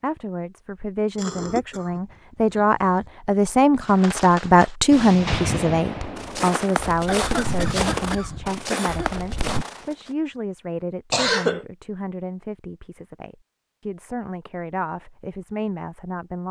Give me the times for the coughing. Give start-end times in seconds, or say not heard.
1.1-2.9, 7.0-9.1, 11.1-11.7.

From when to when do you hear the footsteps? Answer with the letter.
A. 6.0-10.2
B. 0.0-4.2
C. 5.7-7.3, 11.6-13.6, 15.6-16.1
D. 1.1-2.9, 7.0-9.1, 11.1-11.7
A.